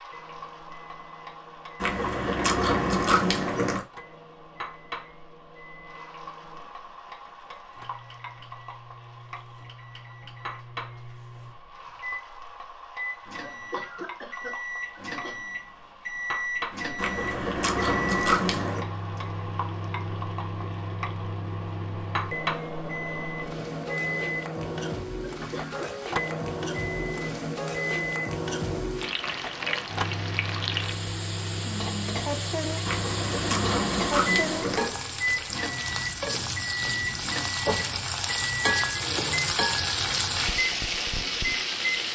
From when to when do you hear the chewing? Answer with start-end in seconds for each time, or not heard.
1.8-3.8, 16.9-18.9, 32.9-34.9.